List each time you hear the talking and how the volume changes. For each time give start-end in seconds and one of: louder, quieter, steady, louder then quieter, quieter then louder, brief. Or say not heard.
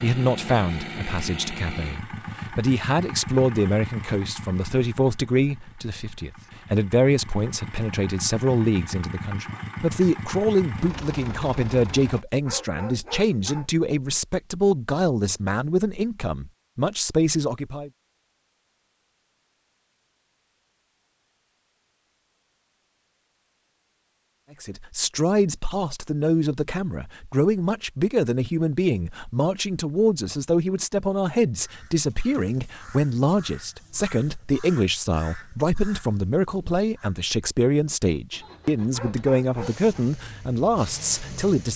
0.0-17.9 steady
24.6-41.7 steady.